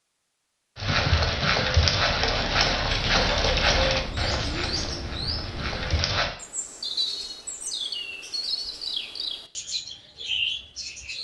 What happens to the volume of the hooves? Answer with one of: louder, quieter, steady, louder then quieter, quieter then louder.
quieter.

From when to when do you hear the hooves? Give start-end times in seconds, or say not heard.
0.8-6.3.